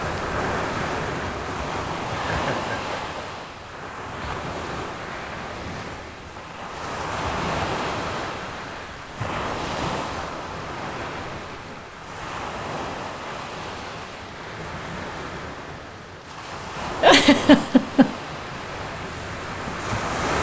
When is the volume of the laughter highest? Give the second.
17 s.